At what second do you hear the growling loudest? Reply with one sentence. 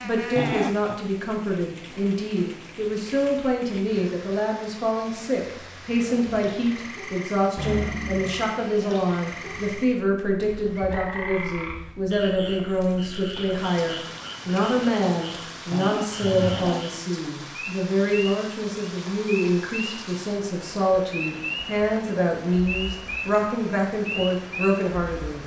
The volume of the growling peaks at 1 second.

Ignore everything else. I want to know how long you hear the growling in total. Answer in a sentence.
You can hear the growling for 2 seconds altogether.